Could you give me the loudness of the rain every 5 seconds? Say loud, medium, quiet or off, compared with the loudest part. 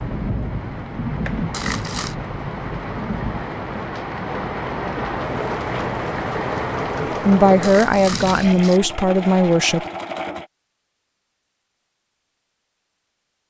loud, loud, off.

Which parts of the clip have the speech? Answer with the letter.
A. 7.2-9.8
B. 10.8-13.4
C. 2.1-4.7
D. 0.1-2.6
A.